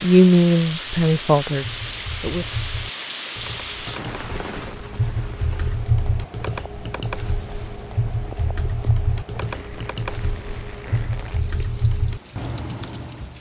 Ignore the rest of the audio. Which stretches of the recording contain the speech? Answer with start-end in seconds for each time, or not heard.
0.0-2.5.